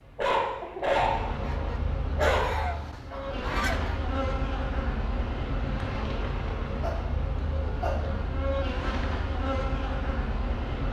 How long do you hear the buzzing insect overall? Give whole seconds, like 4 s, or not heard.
11 s.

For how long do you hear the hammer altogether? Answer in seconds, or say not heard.
not heard.